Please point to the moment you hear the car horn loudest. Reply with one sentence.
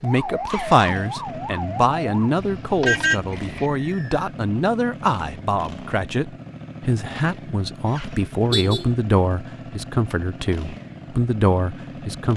The loudest moment of the car horn is at 3 seconds.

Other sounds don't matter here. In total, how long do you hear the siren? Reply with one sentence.
You can hear the siren for 2 seconds altogether.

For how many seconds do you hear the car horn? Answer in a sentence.
The car horn can be heard for 2 seconds in total.